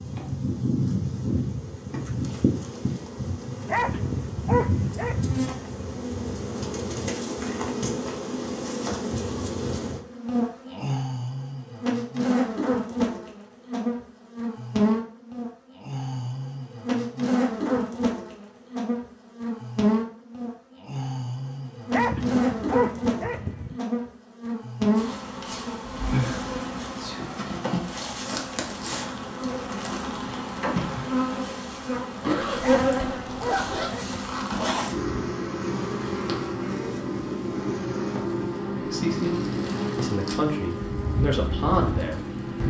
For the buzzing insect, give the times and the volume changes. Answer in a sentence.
You can hear the buzzing insect from 0.0 to 42.6 s, at a steady volume.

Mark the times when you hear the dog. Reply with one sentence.
You can hear the dog from 3.6 to 5.4 s, from 21.9 to 23.8 s and from 32.6 to 34.2 s.